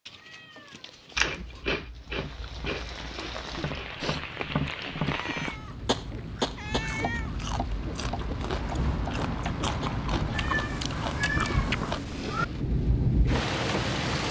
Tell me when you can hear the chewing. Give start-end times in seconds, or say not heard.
1.1-12.2.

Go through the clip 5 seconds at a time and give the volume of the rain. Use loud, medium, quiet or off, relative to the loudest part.
medium, medium, loud.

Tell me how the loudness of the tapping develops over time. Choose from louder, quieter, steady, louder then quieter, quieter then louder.
louder then quieter.